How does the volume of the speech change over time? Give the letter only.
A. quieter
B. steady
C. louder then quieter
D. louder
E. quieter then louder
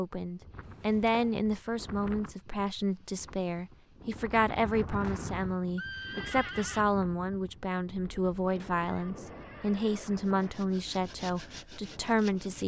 B.